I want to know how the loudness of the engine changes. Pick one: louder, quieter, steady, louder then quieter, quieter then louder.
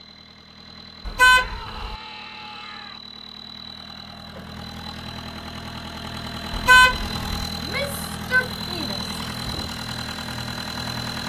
louder.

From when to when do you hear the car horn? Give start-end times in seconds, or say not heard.
1.1-1.9, 6.5-7.5.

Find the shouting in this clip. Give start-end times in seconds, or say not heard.
1.3-3.0, 7.5-9.2.